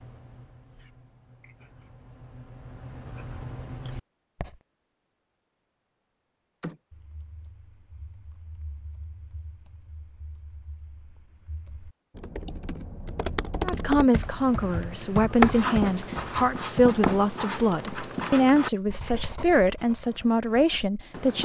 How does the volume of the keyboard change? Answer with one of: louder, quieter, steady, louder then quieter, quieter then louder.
louder then quieter.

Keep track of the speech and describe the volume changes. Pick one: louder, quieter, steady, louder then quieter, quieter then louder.
steady.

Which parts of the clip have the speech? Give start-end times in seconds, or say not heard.
13.6-21.4.